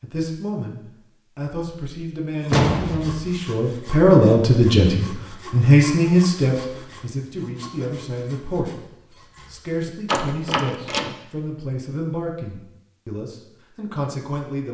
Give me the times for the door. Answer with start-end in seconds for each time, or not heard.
2.5-3.2, 10.1-11.2.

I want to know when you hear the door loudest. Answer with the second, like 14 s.
3 s.